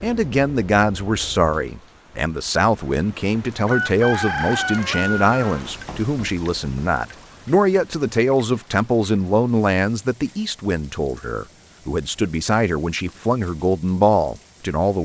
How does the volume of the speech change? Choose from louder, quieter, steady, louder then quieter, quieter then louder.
steady.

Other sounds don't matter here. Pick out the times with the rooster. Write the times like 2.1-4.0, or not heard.
3.6-5.6.